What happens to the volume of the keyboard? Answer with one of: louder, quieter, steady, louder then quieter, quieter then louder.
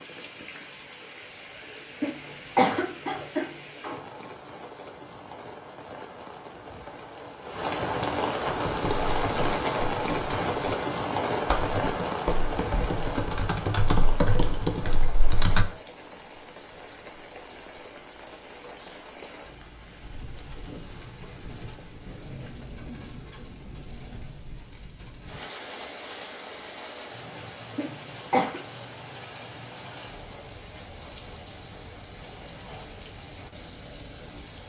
louder.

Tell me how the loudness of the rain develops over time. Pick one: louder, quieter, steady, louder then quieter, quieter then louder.
louder then quieter.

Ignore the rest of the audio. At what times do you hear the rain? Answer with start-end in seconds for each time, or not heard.
0.0-34.6.